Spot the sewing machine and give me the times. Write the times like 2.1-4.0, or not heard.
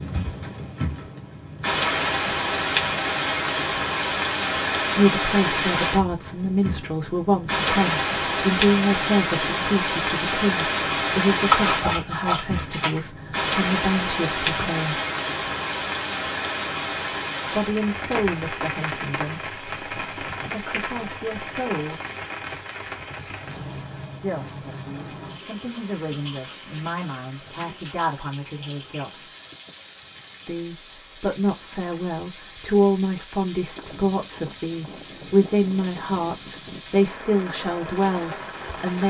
not heard.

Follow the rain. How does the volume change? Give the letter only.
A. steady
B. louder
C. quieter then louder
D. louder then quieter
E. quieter
E.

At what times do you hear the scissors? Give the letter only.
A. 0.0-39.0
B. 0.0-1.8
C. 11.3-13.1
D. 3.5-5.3
C.